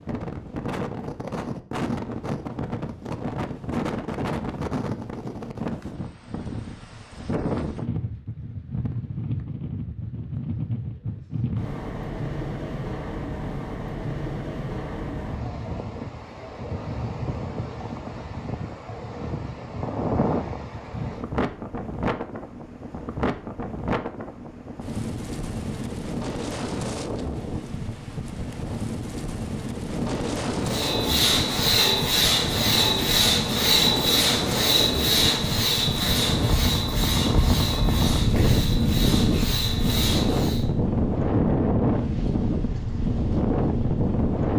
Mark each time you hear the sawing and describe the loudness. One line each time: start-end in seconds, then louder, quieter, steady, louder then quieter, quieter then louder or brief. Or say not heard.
30.6-40.6 quieter.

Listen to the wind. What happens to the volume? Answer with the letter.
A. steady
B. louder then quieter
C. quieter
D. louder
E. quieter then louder
D.